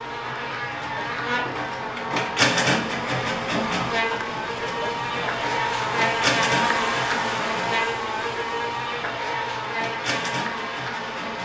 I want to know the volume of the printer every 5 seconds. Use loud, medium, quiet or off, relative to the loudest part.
loud, loud, medium.